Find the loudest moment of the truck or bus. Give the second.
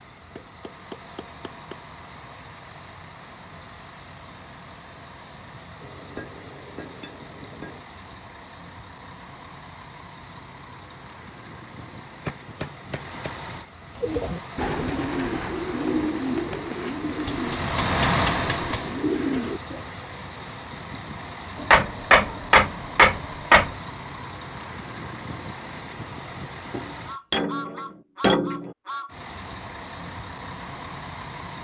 18 s.